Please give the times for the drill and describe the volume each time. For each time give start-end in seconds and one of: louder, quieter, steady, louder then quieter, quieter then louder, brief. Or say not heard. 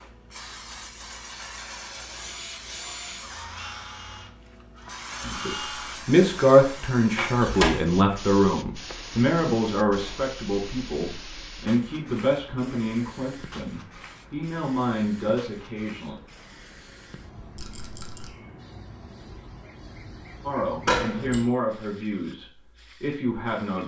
2.0-6.0 quieter then louder.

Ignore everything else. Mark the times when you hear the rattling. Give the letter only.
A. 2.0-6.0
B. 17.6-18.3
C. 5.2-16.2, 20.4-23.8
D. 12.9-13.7
B.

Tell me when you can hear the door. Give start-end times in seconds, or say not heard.
7.2-7.8, 20.9-21.4.